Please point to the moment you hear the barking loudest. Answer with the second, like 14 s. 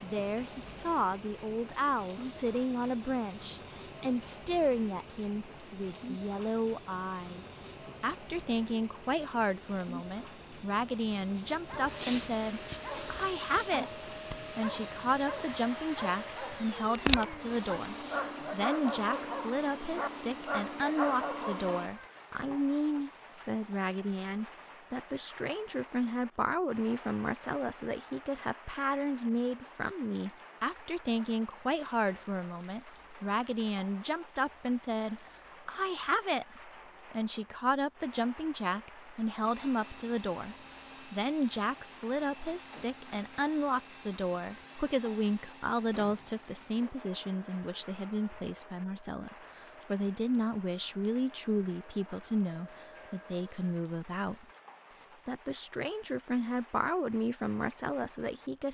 17 s.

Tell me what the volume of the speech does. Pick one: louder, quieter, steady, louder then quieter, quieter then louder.
steady.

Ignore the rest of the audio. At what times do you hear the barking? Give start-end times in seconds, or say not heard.
11.3-21.9.